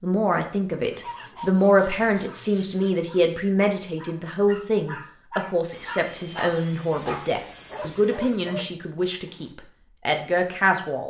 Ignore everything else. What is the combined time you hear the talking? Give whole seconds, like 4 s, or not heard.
11 s.